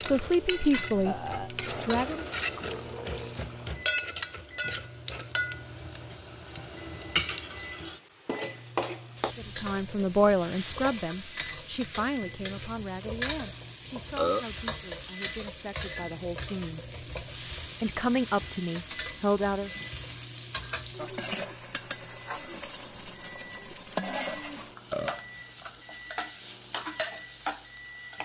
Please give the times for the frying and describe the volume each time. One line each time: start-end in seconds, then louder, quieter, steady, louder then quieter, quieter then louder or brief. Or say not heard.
0.0-28.2 steady.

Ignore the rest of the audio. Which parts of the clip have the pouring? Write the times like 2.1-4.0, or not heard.
1.6-3.8.